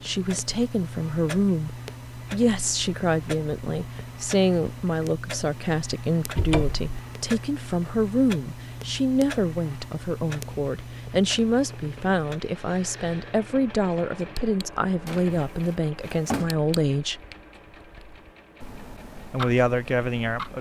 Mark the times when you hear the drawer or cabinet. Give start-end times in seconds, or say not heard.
6.3-7.0, 15.1-16.6.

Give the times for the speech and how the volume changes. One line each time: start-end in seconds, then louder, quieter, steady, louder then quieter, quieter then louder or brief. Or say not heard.
0.0-17.2 steady
19.3-20.5 brief.